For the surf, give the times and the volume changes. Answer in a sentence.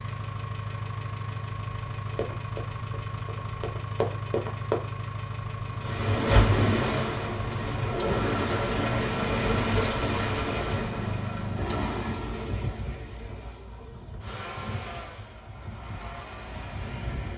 You can hear the surf from 5.7 to 17.3 s, getting quieter.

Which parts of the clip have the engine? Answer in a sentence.
The engine can be heard from 0.0 to 11.9 s and from 14.2 to 17.3 s.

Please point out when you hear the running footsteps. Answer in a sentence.
You can hear the running footsteps from 2.1 to 4.8 s.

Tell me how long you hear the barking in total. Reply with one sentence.
The barking can't be heard in this clip.